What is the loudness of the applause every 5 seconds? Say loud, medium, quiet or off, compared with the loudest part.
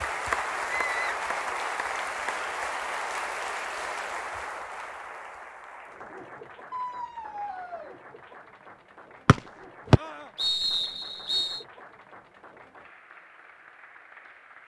loud, quiet, quiet.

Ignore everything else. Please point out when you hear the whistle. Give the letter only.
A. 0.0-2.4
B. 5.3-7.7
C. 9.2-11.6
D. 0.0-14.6
C.